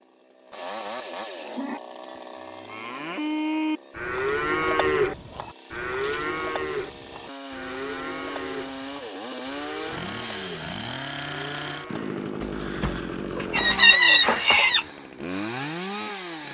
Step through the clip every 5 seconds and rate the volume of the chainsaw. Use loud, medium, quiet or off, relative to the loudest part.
medium, medium, loud, loud.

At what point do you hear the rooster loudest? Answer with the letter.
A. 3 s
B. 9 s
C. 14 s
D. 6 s
C.